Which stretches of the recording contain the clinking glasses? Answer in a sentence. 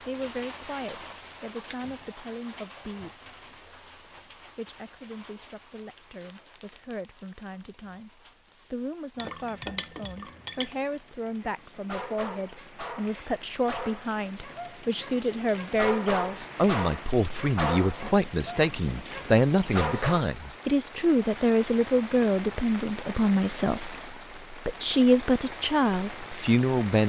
The clinking glasses can be heard from 9.2 to 10.8 s.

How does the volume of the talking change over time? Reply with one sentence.
The loudness of the talking goes up.